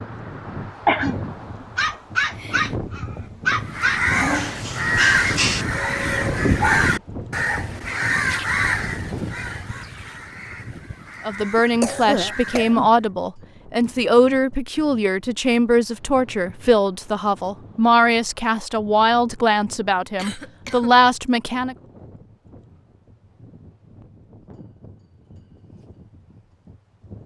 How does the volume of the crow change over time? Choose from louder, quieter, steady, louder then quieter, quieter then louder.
quieter.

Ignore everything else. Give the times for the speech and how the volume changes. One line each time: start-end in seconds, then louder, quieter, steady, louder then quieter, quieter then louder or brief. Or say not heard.
11.2-21.8 steady.